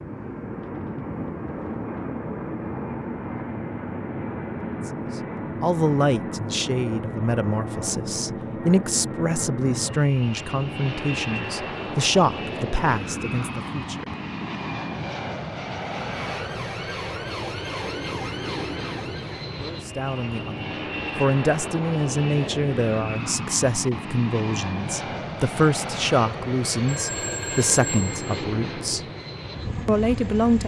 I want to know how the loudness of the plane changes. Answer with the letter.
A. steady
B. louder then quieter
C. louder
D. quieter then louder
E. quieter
A.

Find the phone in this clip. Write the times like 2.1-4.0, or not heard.
26.9-28.2.